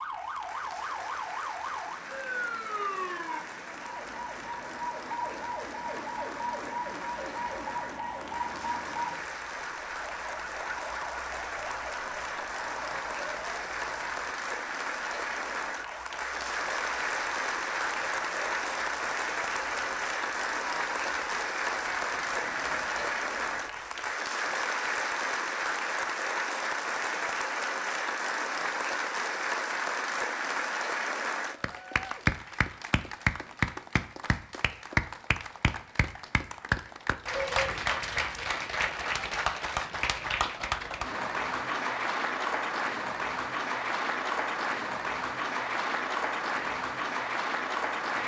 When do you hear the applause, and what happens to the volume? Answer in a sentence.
You can hear the applause from 0.0 to 48.2 s, getting louder.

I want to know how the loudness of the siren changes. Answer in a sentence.
The volume of the siren goes down.